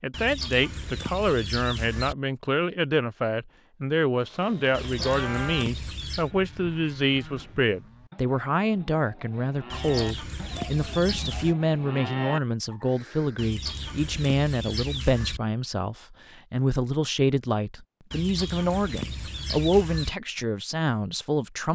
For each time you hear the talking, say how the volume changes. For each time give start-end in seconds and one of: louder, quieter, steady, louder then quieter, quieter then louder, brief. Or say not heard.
0.0-21.7 steady.